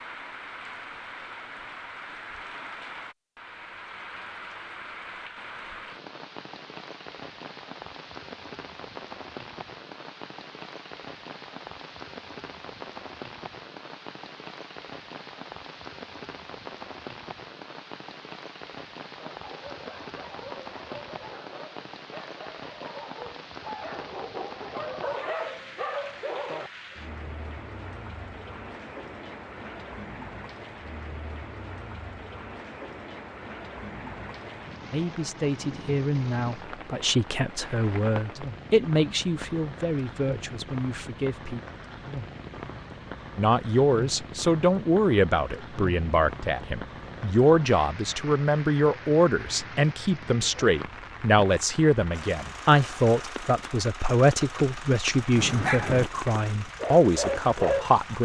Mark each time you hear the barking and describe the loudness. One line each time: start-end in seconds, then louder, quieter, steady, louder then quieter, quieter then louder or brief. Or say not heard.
19.1-26.7 louder
55.3-56.1 brief
56.8-58.0 brief.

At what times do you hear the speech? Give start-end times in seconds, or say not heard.
34.9-41.6, 43.4-58.1.